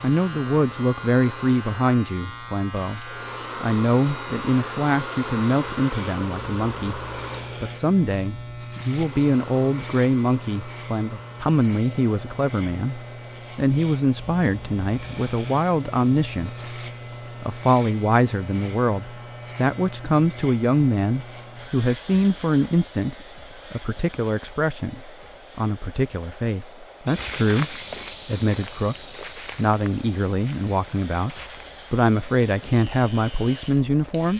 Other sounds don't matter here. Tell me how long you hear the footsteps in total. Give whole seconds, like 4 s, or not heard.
5 s.